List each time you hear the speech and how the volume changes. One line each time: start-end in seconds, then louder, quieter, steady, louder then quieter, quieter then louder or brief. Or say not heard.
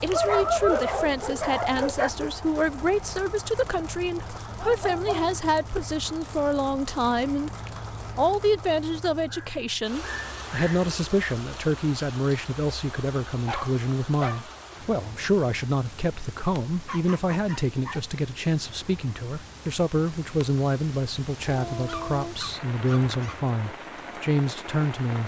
0.0-25.2 steady.